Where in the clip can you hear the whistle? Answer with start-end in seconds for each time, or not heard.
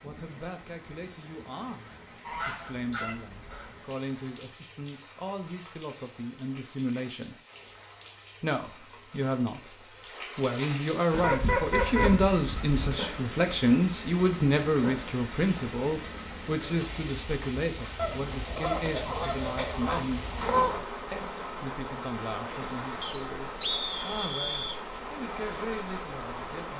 23.0-24.8.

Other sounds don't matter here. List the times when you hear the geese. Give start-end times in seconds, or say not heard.
2.2-3.8, 11.1-12.8, 17.9-20.9.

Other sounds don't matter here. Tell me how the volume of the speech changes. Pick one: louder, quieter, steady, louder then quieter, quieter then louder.
louder then quieter.